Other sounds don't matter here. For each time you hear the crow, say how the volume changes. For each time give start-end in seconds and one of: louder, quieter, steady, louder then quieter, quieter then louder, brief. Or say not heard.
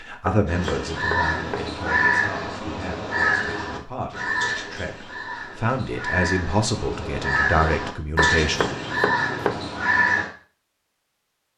0.5-10.3 quieter then louder.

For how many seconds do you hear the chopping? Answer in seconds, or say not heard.
3 s.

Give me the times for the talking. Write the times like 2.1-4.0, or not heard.
0.0-8.8.